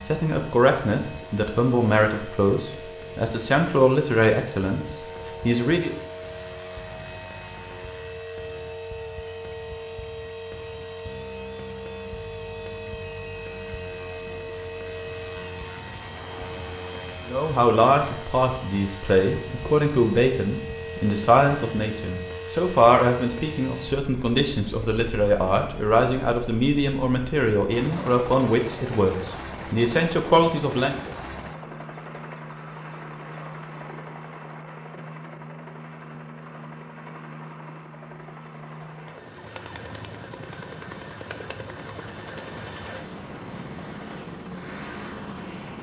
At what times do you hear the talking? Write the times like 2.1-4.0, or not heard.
0.0-6.0, 17.2-31.0.